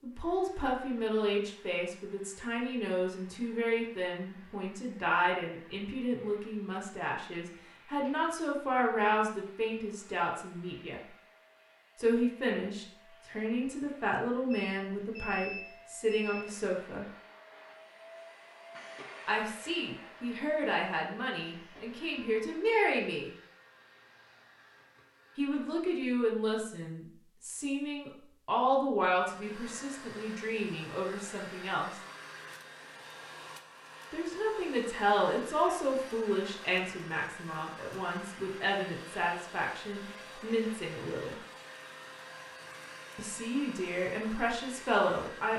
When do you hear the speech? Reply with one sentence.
You can hear the speech from 0.0 to 11.0 s, from 11.9 to 17.1 s, from 19.2 to 23.3 s, from 25.4 to 32.0 s, from 34.1 to 41.4 s and from 43.1 to 45.5 s.